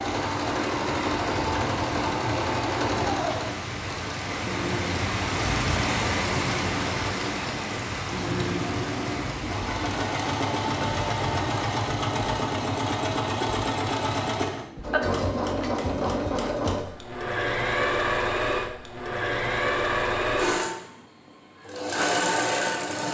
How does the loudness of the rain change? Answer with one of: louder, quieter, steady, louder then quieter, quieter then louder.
louder then quieter.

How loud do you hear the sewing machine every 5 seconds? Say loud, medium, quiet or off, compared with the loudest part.
loud, medium, loud, loud, loud.